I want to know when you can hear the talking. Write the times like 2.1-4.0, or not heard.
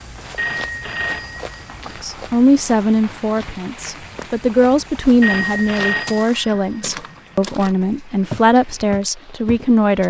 1.9-10.0.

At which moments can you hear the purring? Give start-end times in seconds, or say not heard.
not heard.